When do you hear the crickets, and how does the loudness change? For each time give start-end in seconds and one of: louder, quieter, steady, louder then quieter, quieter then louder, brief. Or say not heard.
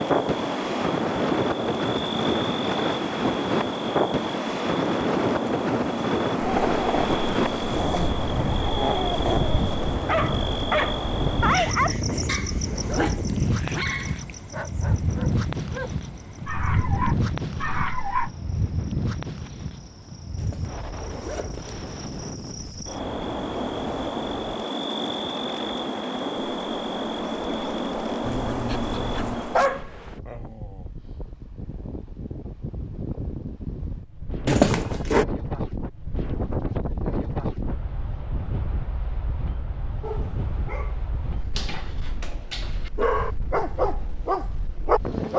0.0-29.9 quieter then louder.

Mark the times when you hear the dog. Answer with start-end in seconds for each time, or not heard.
6.4-18.3, 28.2-30.9, 40.0-45.3.